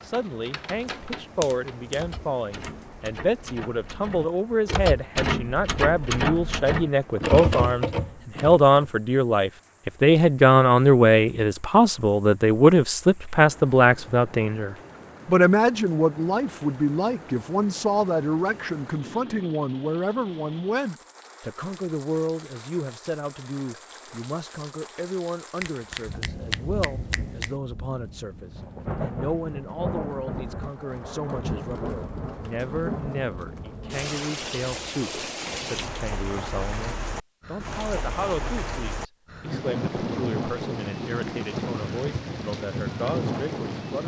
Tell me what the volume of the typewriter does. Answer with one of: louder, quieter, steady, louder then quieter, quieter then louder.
louder.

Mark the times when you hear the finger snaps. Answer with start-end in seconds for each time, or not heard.
0.7-2.9, 25.6-27.6.